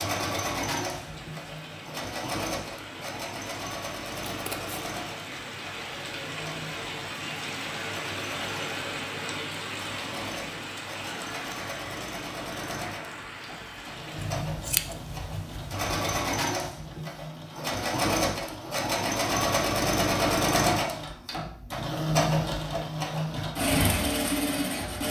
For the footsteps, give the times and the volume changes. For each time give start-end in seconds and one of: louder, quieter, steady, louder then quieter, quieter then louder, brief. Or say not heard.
not heard.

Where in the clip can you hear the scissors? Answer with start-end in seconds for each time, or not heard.
4.2-4.8, 14.2-16.2.